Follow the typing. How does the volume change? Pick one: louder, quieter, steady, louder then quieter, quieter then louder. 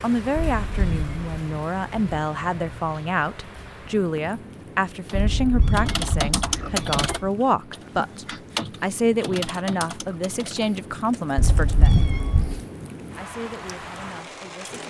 quieter.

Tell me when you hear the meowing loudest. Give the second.
12 s.